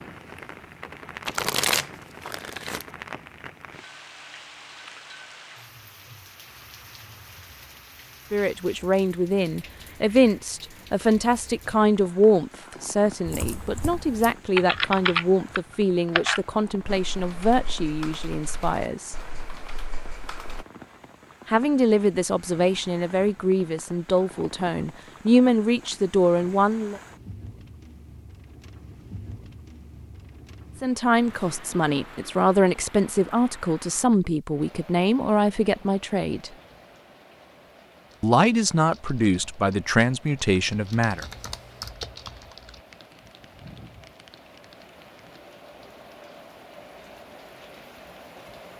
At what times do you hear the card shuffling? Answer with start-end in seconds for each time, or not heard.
1.2-2.9.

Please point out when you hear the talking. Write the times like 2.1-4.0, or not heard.
8.3-19.1, 21.4-27.0, 30.8-36.5, 38.2-41.2.